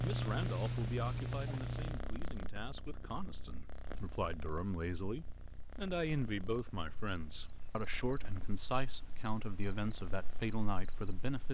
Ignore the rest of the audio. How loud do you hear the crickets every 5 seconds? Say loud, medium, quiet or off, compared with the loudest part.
loud, quiet, quiet.